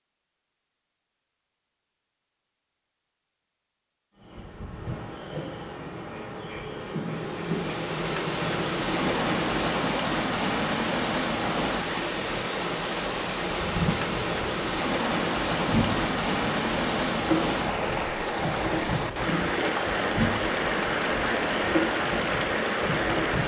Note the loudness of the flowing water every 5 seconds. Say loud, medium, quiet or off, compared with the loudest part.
off, loud, loud, loud, loud.